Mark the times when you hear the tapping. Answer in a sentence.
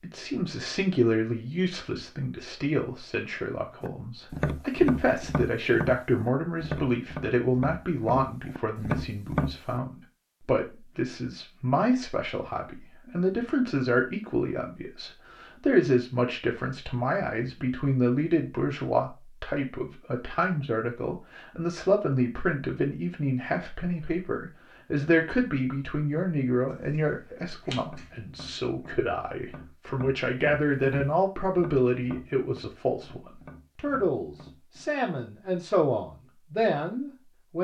The tapping can be heard from 3.8 to 9.8 s and from 27.8 to 34.9 s.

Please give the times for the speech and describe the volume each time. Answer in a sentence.
The speech can be heard from 0.0 to 37.5 s, at a steady volume.